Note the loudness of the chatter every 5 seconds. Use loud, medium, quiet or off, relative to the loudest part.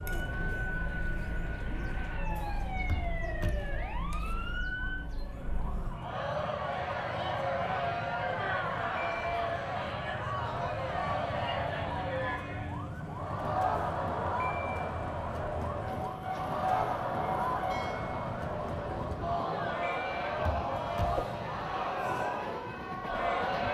medium, loud, loud, loud, loud.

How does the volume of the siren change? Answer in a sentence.
The loudness of the siren stays about the same.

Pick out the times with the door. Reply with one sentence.
The door can be heard from 2.9 to 3.6 s, from 8.2 to 9.3 s and from 20.4 to 21.2 s.